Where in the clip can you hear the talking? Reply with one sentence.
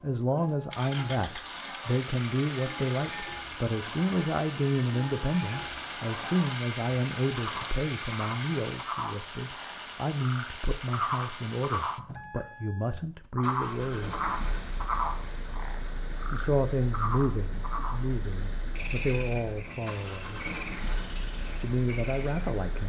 The talking can be heard from 0.0 to 14.2 s, from 16.3 to 20.4 s and from 21.6 to 22.8 s.